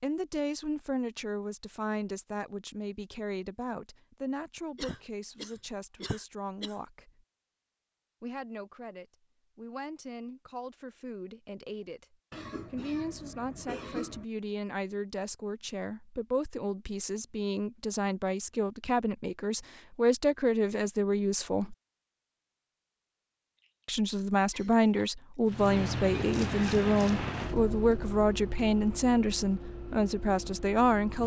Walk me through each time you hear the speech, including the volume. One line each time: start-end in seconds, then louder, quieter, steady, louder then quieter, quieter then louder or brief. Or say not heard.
0.0-7.2 quieter
8.2-21.8 louder
23.9-31.2 steady.